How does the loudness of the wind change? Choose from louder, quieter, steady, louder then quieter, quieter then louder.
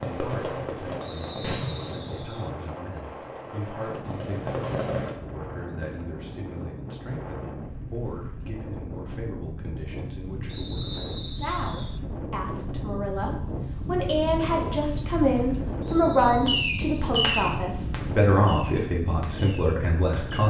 louder.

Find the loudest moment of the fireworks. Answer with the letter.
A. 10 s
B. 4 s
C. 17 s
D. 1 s
C.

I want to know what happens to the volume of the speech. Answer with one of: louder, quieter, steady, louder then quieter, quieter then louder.
louder.